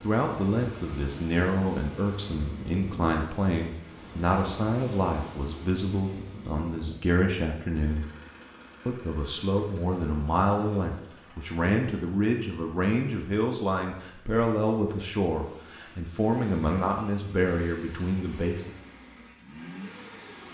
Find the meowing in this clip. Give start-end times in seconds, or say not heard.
not heard.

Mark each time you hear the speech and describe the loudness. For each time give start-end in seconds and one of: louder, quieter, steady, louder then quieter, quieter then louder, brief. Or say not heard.
0.0-8.1 steady
8.8-18.7 steady.